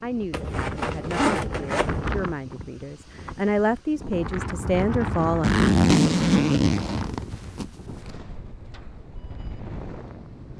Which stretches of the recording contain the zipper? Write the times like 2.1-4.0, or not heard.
0.3-2.0, 5.4-8.1.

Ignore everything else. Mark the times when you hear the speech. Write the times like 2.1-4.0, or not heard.
0.0-5.5.